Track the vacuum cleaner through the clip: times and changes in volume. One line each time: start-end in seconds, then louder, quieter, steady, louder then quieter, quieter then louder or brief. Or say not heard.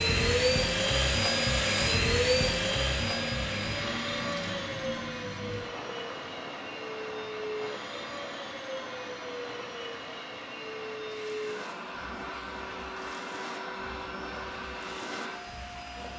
0.0-16.1 quieter.